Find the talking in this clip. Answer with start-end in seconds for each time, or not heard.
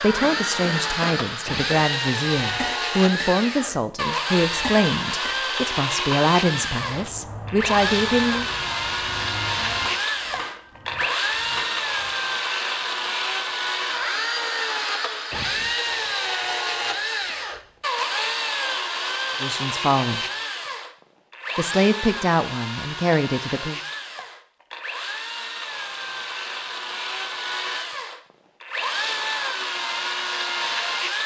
0.0-8.5, 19.4-20.2, 21.6-23.8.